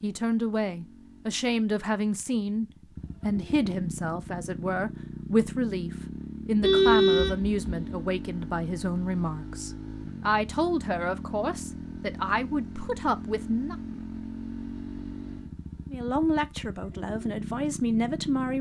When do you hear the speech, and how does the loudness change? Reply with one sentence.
You can hear the speech from 0.0 to 13.8 s, at a steady volume; and briefly from 15.9 to 18.5 s.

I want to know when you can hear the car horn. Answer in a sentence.
You can hear the car horn from 6.6 to 8.0 s.